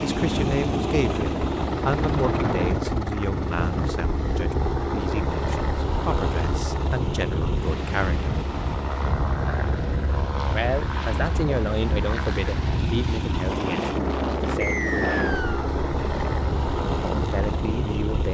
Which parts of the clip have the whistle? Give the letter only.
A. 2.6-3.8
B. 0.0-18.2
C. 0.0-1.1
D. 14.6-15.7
D.